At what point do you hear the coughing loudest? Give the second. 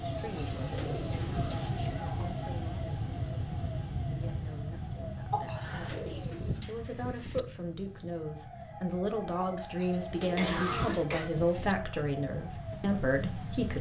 11 s.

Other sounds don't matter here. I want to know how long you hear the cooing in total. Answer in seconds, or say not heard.
5 s.